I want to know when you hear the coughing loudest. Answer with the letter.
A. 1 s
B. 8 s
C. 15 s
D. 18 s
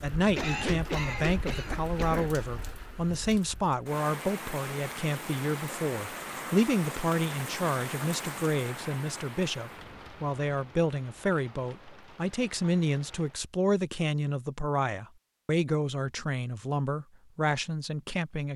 A.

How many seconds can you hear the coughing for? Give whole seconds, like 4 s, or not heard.
2 s.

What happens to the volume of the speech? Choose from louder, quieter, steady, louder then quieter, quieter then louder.
steady.